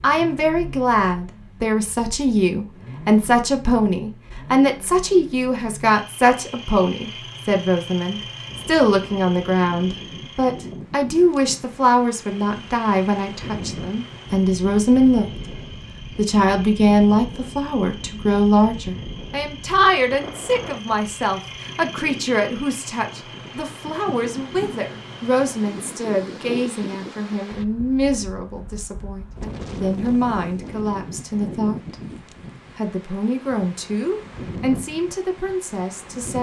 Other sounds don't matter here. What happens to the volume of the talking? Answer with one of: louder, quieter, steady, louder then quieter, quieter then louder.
quieter.